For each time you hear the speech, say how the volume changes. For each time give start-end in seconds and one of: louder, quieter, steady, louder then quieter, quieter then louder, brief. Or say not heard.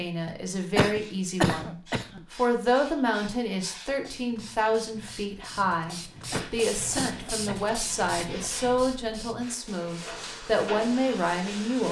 0.0-11.8 steady.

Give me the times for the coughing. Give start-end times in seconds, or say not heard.
0.8-2.2, 6.3-8.4.